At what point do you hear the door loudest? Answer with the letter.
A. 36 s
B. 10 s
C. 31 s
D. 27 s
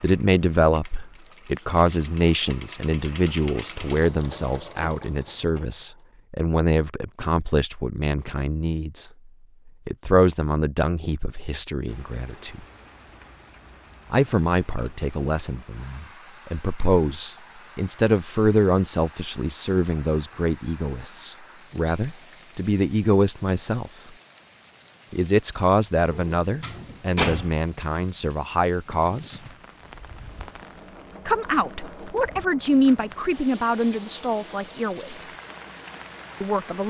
D.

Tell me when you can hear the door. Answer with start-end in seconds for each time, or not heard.
26.1-27.6.